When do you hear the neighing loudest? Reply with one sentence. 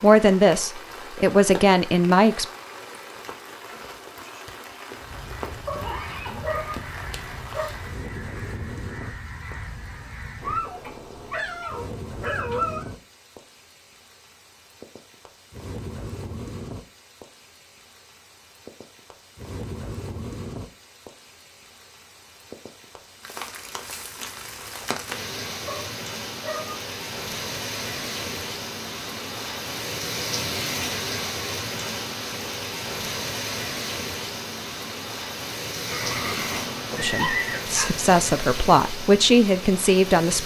The volume of the neighing peaks at 37 seconds.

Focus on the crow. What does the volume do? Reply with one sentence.
The volume of the crow stays about the same.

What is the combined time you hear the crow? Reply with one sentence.
You can hear the crow for 6 seconds altogether.